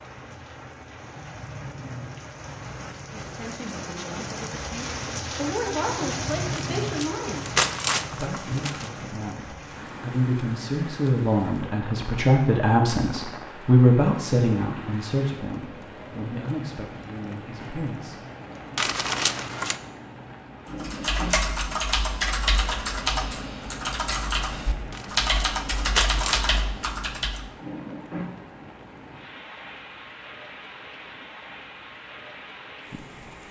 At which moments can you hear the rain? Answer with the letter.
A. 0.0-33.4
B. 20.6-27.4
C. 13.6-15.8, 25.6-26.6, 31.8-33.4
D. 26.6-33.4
A.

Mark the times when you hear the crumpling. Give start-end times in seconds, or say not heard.
6.8-8.9, 18.8-19.8, 24.9-26.6.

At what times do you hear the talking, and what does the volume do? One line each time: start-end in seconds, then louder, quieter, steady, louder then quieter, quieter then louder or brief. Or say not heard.
3.1-18.2 louder then quieter.